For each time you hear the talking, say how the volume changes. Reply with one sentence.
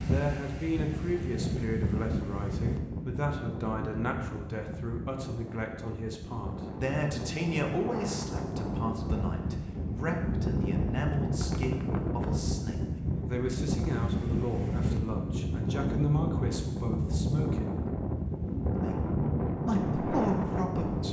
You can hear the talking from 0.0 to 17.9 s, at a steady volume; and briefly from 18.8 to 21.0 s.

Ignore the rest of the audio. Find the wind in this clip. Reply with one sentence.
The wind can be heard from 0.0 to 21.0 s.